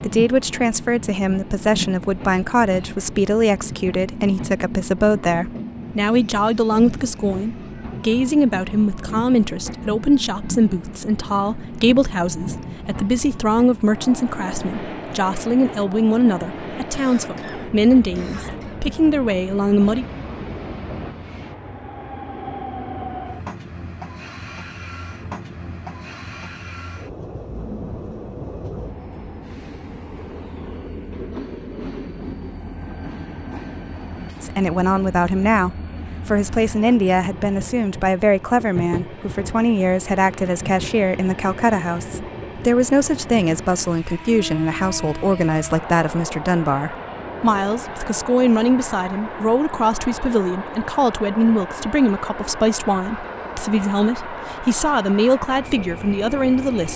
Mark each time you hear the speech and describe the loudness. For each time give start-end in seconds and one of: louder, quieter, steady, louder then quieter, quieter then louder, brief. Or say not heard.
0.0-20.1 steady
34.4-56.9 steady.